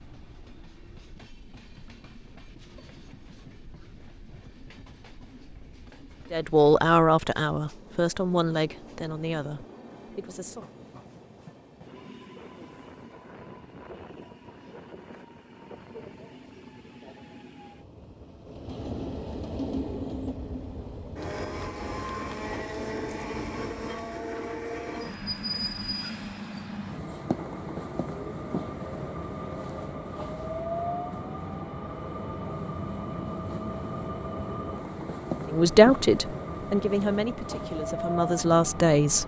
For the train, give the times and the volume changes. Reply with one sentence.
The train can be heard from 0.0 to 39.2 s, getting louder.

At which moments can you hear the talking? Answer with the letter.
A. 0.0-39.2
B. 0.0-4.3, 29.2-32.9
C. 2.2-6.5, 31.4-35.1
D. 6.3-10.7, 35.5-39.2
D.